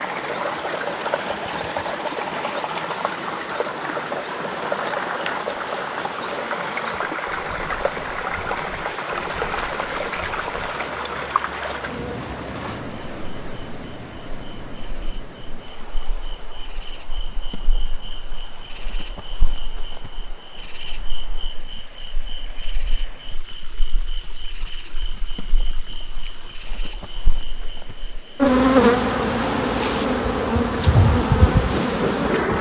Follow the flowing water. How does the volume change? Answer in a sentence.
The loudness of the flowing water goes down.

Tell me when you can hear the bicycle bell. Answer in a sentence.
You can't hear the bicycle bell here.